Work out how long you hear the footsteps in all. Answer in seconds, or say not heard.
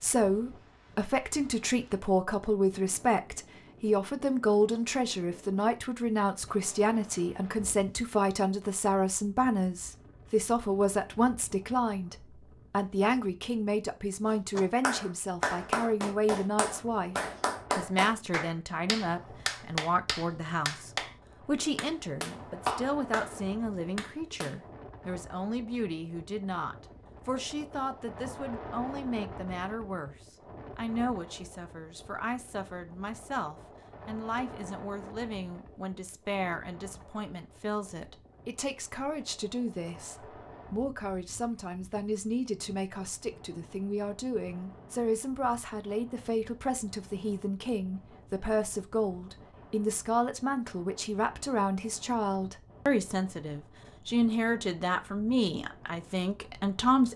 not heard.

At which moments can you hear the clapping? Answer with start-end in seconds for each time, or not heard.
14.2-24.6.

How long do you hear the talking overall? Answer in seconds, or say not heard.
57 s.